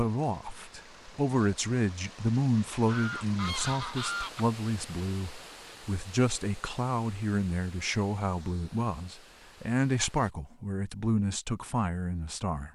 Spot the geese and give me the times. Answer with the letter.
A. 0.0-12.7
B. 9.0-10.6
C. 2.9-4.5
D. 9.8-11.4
C.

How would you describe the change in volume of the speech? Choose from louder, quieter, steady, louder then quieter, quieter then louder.
steady.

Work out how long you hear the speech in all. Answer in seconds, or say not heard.
13 s.